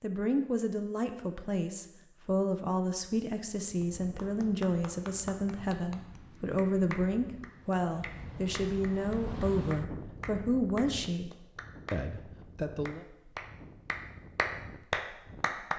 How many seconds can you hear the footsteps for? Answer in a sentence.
The footsteps can't be heard in this clip.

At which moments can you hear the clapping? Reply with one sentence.
The clapping can be heard from 3.8 to 12.1 s and from 12.8 to 15.7 s.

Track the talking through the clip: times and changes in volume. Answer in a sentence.
You can hear the talking from 0.0 to 11.3 s, at a steady volume; and briefly from 11.9 to 13.1 s.